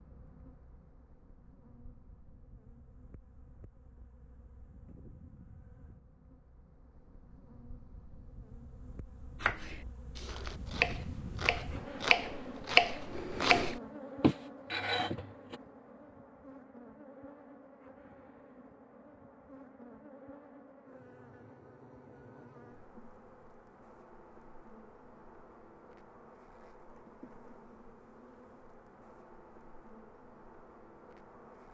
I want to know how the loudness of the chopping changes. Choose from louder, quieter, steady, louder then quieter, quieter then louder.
louder.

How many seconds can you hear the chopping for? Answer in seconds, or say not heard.
6 s.